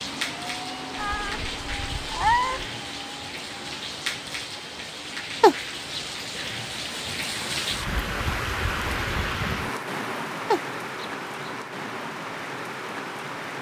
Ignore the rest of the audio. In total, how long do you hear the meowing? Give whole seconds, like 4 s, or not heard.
3 s.